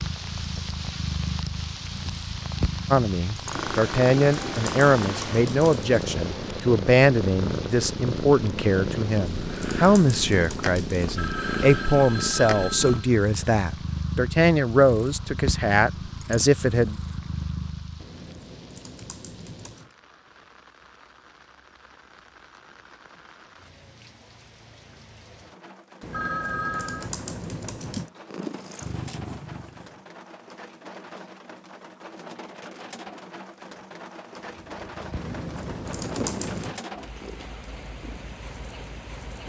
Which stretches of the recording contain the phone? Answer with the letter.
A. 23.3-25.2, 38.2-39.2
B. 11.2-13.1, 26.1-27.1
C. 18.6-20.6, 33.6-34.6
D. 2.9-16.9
B.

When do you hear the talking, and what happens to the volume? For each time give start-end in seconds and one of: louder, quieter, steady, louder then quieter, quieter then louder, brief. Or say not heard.
2.9-16.9 steady.